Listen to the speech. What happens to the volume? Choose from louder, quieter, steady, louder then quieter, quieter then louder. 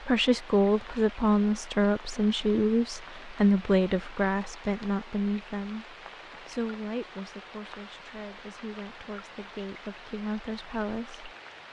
quieter.